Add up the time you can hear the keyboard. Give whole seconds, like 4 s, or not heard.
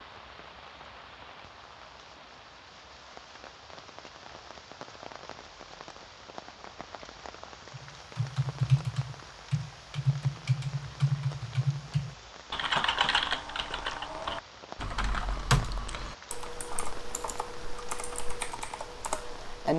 12 s.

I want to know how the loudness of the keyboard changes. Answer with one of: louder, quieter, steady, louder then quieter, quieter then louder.
quieter.